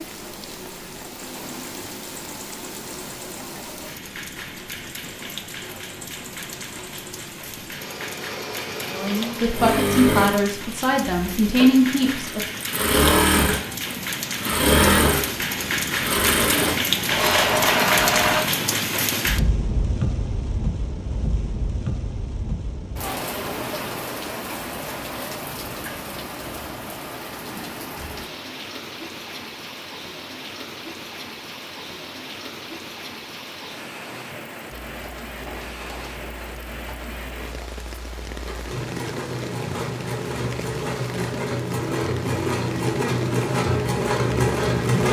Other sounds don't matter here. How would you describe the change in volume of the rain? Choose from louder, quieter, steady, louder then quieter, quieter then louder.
louder then quieter.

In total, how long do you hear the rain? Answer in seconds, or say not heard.
45 s.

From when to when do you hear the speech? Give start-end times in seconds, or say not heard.
8.9-12.4.